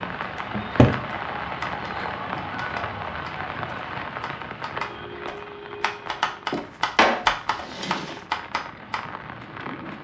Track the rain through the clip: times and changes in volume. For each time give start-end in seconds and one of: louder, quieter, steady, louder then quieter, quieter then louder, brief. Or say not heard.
0.0-9.9 quieter.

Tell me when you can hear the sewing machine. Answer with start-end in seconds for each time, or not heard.
not heard.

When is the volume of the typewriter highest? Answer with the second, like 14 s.
7 s.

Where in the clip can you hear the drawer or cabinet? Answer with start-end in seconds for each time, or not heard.
0.5-1.1, 6.5-8.2.